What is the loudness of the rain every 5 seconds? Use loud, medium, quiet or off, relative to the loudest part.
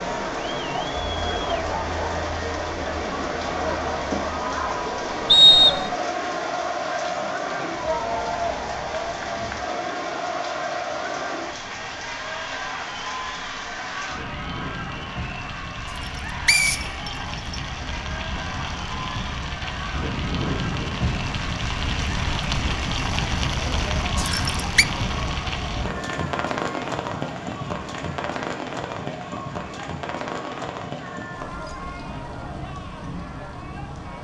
medium, medium, medium, medium, loud, loud, medium.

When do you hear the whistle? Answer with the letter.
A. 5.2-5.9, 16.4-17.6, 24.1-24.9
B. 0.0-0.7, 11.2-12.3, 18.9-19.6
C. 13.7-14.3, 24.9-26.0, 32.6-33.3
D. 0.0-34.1
A.